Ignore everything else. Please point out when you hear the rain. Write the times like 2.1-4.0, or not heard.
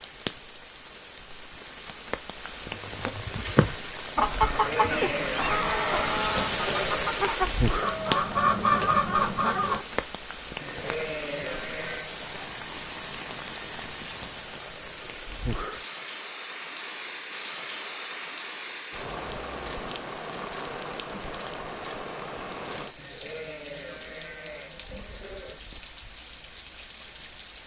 0.0-27.6.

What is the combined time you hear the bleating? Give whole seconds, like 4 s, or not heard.
7 s.